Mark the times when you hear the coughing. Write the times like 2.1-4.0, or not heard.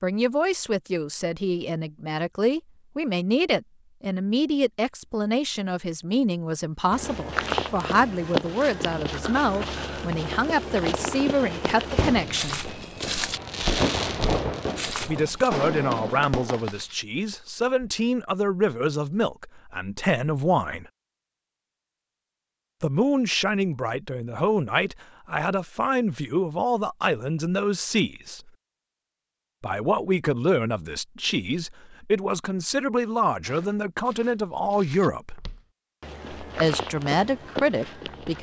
not heard.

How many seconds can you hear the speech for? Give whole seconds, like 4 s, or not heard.
32 s.